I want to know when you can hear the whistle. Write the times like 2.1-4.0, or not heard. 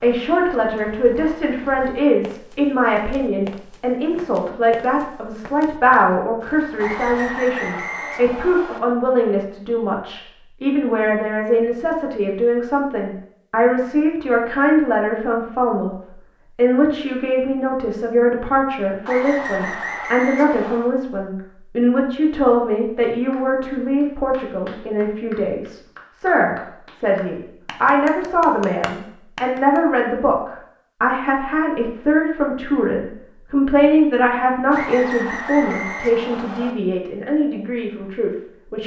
6.8-8.8, 19.1-20.9, 34.7-36.8.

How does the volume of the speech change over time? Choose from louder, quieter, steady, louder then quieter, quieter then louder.
steady.